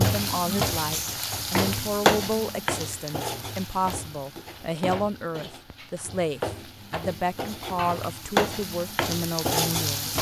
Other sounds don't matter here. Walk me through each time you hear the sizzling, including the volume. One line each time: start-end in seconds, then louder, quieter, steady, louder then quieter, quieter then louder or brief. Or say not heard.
0.0-10.1 quieter then louder.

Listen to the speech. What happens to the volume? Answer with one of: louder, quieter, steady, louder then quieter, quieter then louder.
steady.